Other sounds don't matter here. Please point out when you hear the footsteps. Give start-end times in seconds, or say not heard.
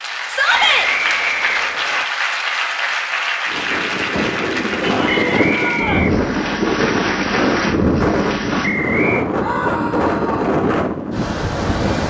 not heard.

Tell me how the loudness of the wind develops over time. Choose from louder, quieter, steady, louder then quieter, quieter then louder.
steady.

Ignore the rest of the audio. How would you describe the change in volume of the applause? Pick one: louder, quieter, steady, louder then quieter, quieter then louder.
steady.